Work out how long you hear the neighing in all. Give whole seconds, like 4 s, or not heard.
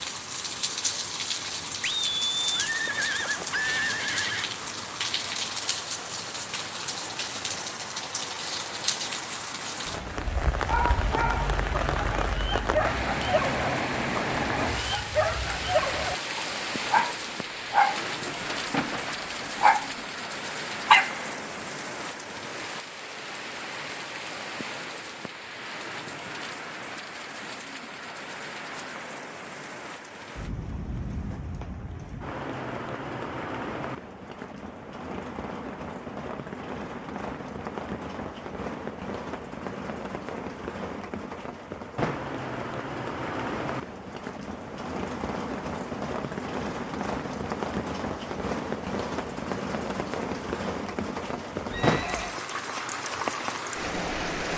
3 s.